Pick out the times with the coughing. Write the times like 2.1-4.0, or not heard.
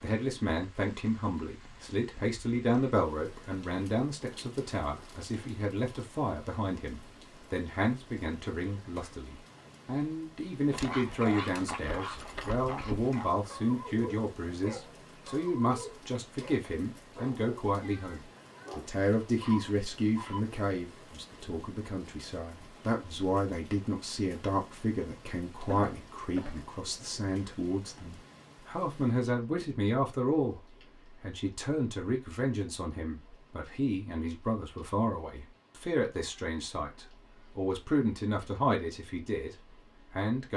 25.6-26.6.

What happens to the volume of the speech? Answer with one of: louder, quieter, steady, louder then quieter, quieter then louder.
steady.